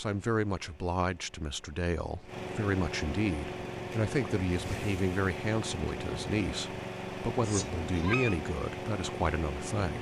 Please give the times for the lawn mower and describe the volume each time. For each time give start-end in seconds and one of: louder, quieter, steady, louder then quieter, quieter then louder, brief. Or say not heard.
0.0-9.9 louder.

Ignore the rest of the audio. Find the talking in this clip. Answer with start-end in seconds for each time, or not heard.
0.0-9.9.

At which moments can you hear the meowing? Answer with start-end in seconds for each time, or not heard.
7.4-8.3.